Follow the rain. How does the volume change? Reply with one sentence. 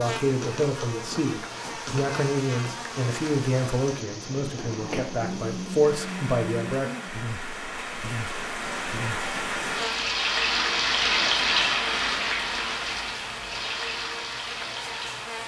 The loudness of the rain goes up, then down.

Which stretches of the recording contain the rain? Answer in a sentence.
You can hear the rain from 0.0 to 15.4 s.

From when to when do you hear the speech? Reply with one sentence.
You can hear the speech from 0.0 to 6.9 s.